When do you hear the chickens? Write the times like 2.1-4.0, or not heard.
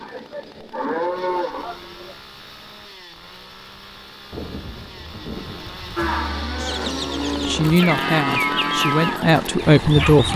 6.5-10.3.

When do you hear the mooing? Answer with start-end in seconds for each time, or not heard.
0.0-2.1, 6.0-10.3.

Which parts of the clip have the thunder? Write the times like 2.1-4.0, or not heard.
4.3-6.0.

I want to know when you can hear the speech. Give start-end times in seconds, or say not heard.
7.5-10.3.